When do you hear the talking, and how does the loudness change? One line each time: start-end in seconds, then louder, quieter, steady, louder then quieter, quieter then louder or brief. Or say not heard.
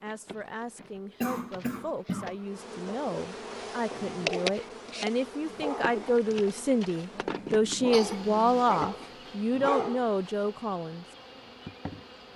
0.0-11.1 louder.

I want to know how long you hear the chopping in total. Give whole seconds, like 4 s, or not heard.
not heard.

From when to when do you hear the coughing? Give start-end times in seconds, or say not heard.
1.2-2.4, 7.9-8.7.